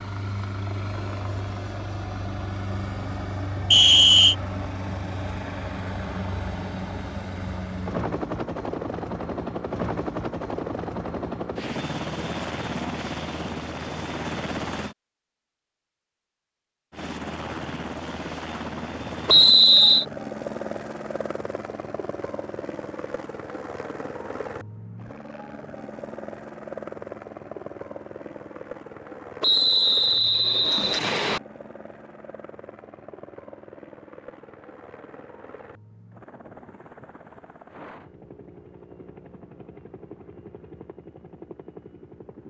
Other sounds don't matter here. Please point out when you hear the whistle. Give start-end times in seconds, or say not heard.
3.7-4.3, 19.2-20.1, 29.4-31.4.